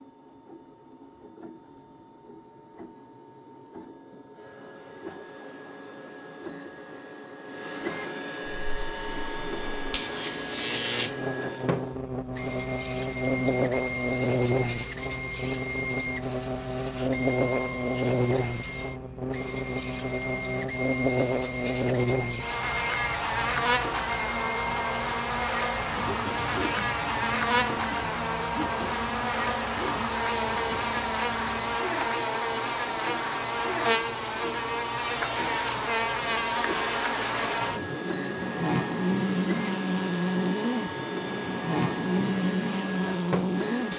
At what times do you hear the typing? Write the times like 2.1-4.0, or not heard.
not heard.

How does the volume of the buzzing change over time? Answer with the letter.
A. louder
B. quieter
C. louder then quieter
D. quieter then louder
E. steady
E.